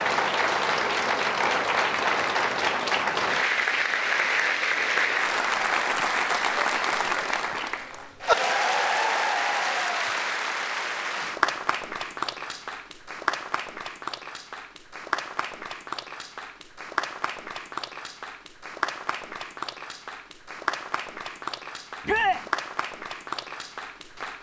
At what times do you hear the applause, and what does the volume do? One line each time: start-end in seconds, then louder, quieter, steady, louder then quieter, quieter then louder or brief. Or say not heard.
0.0-24.3 quieter.